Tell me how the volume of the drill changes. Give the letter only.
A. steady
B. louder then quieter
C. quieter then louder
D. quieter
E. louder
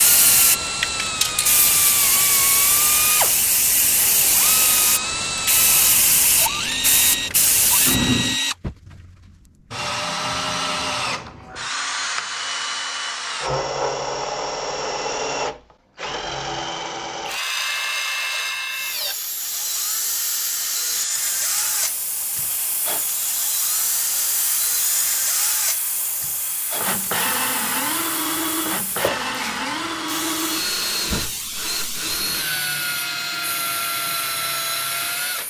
A.